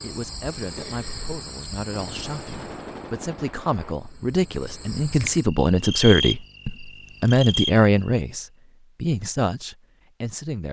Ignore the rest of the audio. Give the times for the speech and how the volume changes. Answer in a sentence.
You can hear the speech from 0.0 to 10.6 s, getting louder then quieter.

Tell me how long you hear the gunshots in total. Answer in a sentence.
The gunshots can be heard for 2 seconds in total.